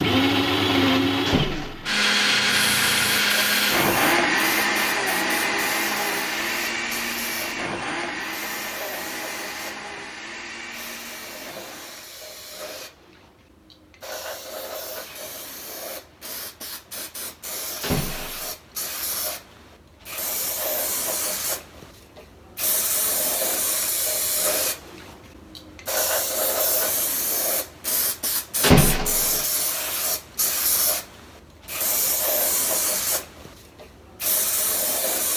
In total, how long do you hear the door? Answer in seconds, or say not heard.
2 s.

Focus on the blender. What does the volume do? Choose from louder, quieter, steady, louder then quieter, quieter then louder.
quieter.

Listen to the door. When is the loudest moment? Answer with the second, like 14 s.
29 s.